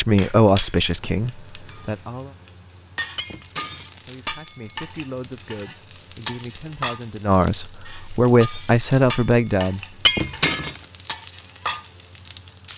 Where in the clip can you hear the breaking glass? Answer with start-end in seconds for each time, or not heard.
3.1-4.0, 10.1-10.8.